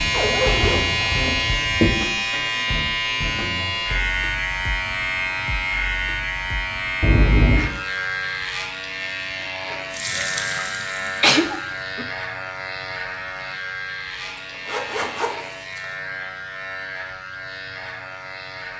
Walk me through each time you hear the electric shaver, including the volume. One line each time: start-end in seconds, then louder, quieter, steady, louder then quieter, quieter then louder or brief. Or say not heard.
0.0-18.7 quieter.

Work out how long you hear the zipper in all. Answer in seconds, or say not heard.
4 s.